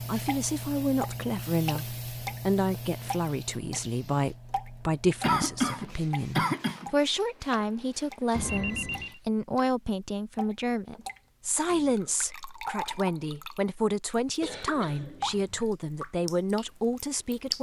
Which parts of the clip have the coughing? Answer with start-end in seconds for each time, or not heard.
5.2-6.9, 14.4-15.7.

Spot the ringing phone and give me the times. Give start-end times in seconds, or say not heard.
8.3-9.2.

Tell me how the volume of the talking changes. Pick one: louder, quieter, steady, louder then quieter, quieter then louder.
steady.